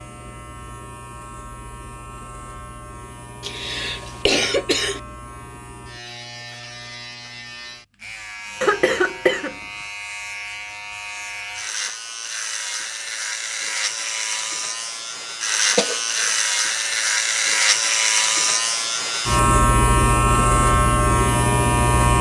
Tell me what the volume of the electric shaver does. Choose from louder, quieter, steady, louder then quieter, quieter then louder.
louder.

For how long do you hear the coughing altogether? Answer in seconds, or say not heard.
3 s.